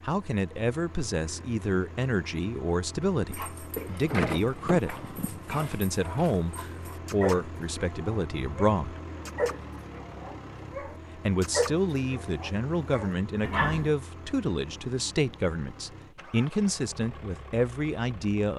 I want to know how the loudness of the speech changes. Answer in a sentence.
The loudness of the speech stays about the same.